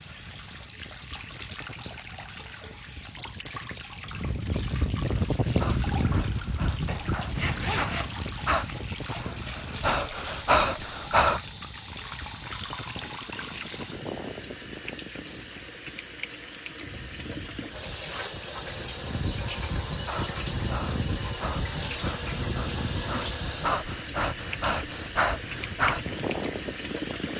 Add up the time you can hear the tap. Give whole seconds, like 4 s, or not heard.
27 s.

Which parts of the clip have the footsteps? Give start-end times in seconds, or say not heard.
not heard.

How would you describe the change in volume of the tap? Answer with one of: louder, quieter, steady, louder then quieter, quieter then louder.
louder.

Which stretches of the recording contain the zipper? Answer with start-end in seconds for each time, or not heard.
6.8-8.2.